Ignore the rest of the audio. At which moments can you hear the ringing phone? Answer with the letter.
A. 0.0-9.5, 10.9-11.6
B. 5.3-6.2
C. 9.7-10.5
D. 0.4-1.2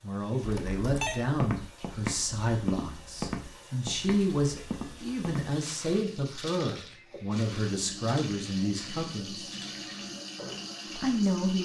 D.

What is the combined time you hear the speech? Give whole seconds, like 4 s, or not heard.
10 s.